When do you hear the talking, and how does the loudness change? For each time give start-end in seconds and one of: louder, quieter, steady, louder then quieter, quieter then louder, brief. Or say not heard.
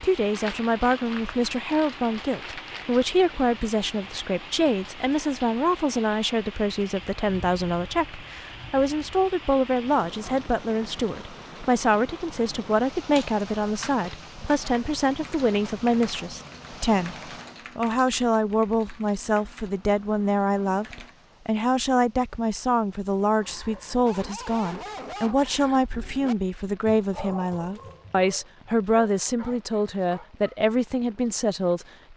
0.0-17.1 steady
17.8-32.1 steady.